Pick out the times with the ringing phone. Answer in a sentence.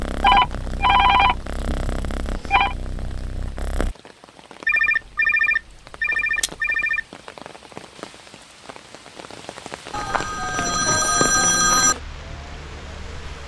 The ringing phone can be heard from 0.2 to 2.8 s, from 4.7 to 7.0 s and from 9.9 to 11.9 s.